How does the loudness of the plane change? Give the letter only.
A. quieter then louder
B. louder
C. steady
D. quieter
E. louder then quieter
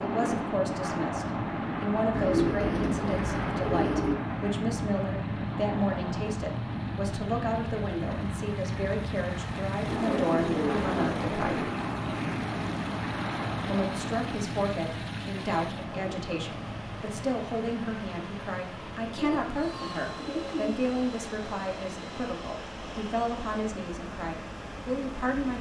D.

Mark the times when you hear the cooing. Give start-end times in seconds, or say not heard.
2.1-4.2, 9.8-11.7, 19.1-20.8.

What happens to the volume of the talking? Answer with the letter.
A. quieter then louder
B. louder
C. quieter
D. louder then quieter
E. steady
E.